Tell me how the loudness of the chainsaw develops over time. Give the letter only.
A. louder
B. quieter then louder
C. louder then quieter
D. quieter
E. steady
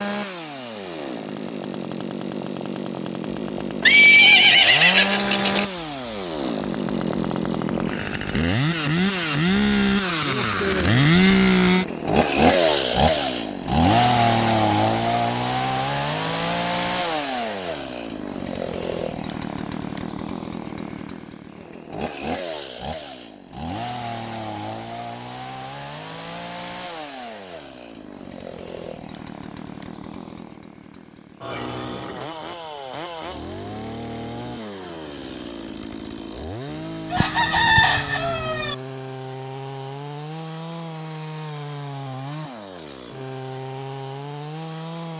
C.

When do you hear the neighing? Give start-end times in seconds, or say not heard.
3.8-5.7.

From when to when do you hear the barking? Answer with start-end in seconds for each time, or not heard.
not heard.